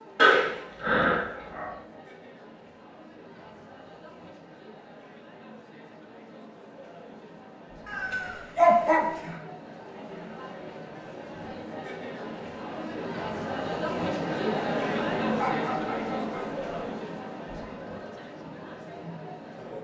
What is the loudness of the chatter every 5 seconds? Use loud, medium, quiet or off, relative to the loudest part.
quiet, quiet, loud, loud.